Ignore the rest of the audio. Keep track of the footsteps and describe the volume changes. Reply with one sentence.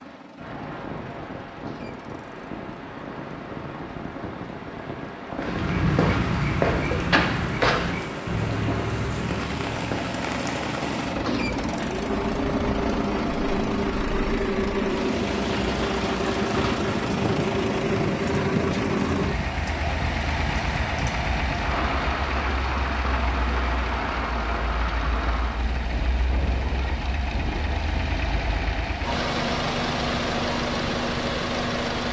The volume of the footsteps goes down.